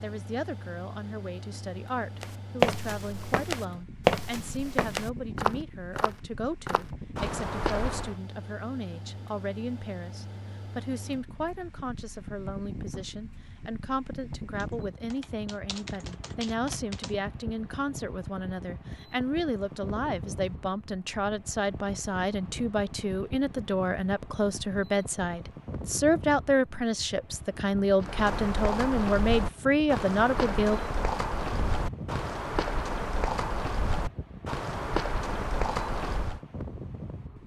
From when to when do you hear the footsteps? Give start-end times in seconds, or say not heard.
2.2-8.2, 28.0-36.4.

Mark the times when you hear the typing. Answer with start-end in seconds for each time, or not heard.
14.6-17.1.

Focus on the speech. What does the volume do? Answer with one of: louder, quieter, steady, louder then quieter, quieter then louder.
louder.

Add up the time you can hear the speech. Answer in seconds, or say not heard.
31 s.